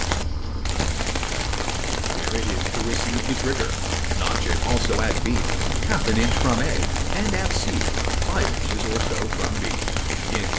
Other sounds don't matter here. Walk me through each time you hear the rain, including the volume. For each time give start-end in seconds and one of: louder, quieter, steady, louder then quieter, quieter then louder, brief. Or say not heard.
0.0-10.5 steady.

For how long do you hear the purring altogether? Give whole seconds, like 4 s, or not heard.
10 s.